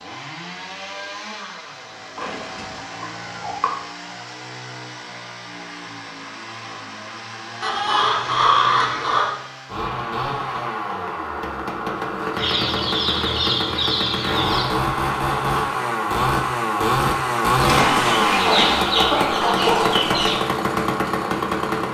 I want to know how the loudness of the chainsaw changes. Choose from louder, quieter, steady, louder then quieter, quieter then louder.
louder.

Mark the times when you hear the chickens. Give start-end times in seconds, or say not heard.
2.1-3.7, 7.6-9.3, 12.3-14.7, 17.6-20.4.